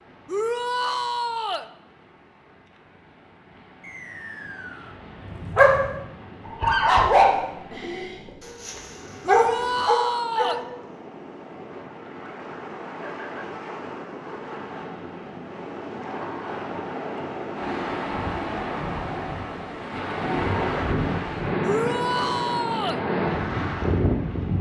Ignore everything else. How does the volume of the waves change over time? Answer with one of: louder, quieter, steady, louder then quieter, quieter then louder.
louder.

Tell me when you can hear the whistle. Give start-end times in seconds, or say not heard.
3.8-5.0.